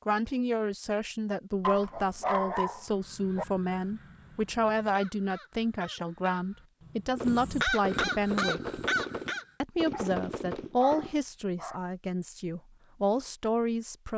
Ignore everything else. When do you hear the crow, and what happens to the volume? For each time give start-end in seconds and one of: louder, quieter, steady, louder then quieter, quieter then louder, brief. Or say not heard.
3.0-9.4 louder.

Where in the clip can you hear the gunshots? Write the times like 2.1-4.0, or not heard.
7.2-11.2.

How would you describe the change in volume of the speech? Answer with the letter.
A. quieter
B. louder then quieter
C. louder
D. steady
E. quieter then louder
D.